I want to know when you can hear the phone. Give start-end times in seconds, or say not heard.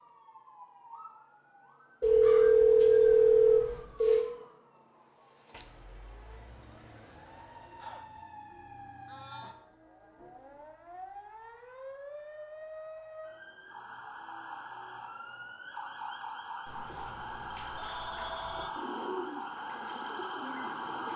2.0-4.2, 16.6-18.6.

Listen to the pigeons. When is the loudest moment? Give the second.
19 s.